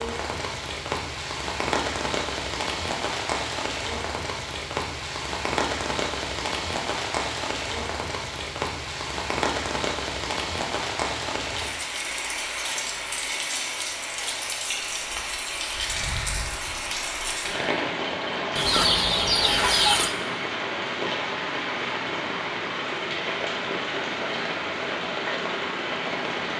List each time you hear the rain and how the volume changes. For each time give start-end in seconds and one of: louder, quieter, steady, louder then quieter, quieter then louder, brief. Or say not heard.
0.0-26.5 steady.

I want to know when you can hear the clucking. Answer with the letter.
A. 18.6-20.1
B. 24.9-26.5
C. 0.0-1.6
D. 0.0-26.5
A.